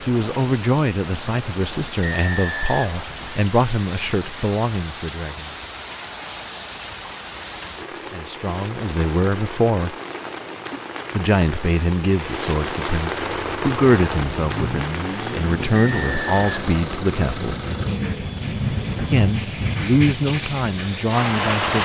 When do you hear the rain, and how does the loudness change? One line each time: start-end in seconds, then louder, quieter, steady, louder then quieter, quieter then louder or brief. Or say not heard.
0.0-21.8 louder.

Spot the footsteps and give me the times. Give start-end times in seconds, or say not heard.
not heard.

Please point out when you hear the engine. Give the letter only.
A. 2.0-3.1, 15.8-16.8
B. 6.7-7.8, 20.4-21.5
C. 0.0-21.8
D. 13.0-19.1
D.